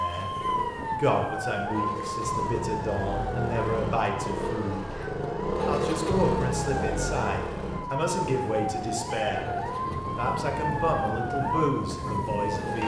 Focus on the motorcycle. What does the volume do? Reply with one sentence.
The loudness of the motorcycle goes up, then down.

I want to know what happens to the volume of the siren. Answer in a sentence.
The volume of the siren goes down, then up.